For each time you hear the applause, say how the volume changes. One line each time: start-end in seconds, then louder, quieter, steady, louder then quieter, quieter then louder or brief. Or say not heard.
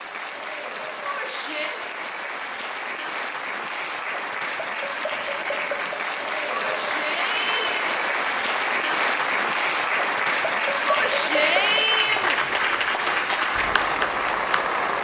0.0-14.9 louder.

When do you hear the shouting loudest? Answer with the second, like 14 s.
12 s.